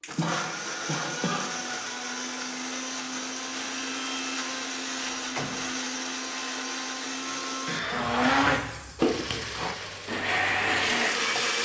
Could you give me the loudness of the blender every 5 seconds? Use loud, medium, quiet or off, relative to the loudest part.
medium, loud, loud.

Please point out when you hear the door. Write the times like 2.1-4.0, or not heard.
5.0-5.8.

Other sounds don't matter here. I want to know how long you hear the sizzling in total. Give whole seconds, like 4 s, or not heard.
3 s.